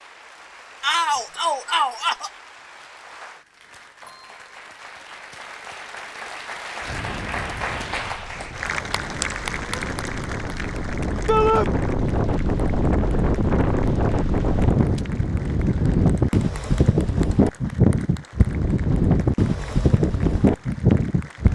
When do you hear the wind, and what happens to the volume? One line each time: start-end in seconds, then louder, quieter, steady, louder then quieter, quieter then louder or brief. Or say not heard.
6.8-21.5 louder.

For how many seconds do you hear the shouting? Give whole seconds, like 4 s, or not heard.
2 s.